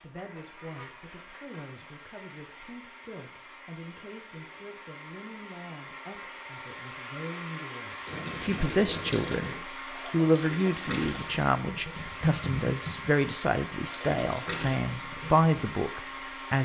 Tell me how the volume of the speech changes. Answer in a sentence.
The loudness of the speech goes up.